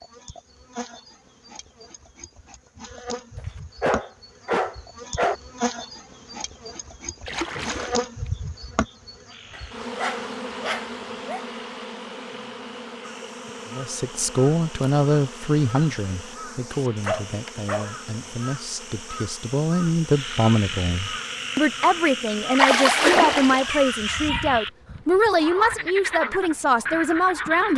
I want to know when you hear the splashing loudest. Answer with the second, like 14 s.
23 s.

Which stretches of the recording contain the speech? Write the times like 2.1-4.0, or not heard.
13.7-27.7.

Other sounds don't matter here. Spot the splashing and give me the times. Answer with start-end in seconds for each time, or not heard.
7.2-8.3, 22.5-23.7.